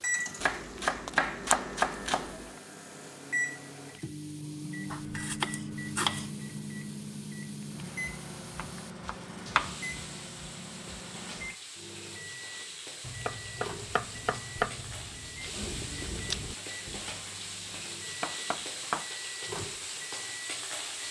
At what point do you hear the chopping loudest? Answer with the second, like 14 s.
2 s.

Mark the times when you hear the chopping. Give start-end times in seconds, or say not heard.
0.4-2.5, 4.9-6.3, 8.6-10.1, 13.1-15.1, 17.8-19.1.